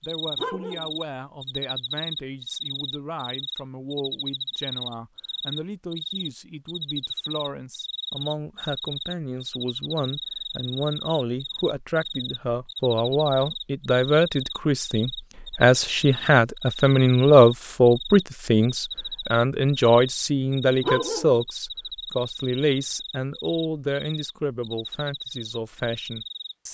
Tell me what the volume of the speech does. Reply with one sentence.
The volume of the speech goes up, then down.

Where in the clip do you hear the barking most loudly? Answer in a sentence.
The volume of the barking peaks at 21 seconds.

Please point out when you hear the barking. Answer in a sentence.
The barking can be heard from 0.3 to 0.9 s and from 20.8 to 21.4 s.